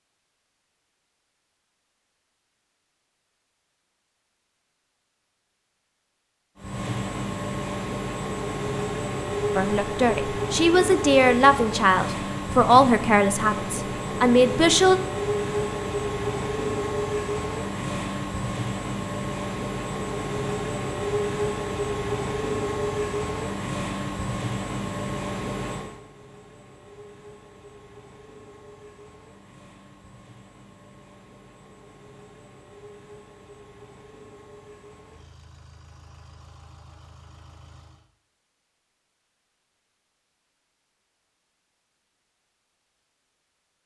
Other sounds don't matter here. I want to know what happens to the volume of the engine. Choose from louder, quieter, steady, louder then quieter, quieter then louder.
quieter.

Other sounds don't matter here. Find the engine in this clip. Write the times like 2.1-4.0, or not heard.
6.5-38.1.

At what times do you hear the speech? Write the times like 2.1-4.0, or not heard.
9.6-15.0.